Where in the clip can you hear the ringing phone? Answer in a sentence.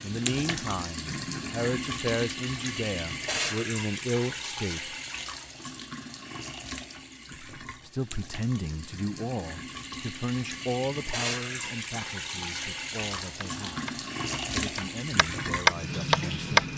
You can't hear the ringing phone here.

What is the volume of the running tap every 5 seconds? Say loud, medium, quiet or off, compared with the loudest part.
loud, medium, loud, loud.